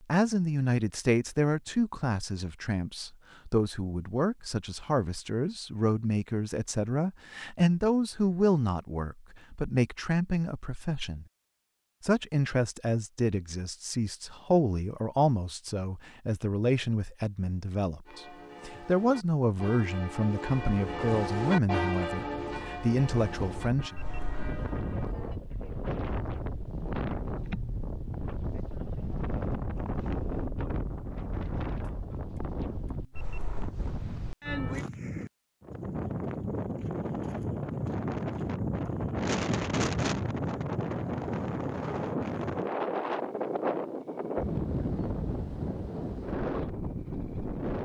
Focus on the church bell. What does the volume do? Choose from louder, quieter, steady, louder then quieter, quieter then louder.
louder then quieter.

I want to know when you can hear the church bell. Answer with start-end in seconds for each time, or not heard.
18.1-25.4.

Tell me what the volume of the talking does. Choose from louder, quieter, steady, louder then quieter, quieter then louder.
steady.